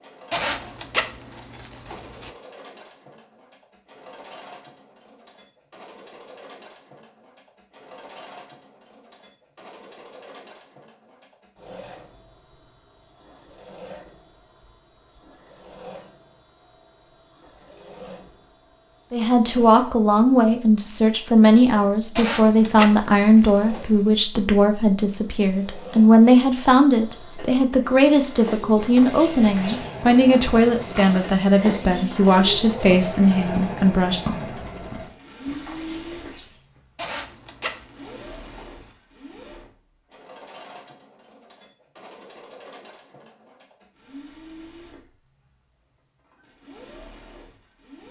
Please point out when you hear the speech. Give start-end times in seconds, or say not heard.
19.1-34.2.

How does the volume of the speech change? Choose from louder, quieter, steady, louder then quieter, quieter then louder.
steady.